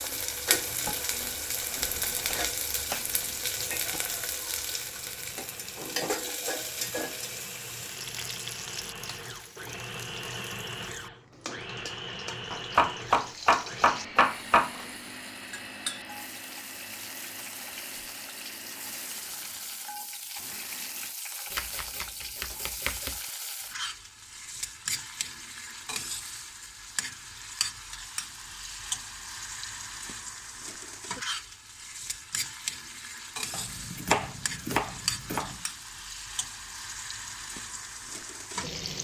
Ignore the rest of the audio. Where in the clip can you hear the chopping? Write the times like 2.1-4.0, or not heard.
1.2-3.1, 12.5-14.8, 21.5-23.1, 33.5-35.5.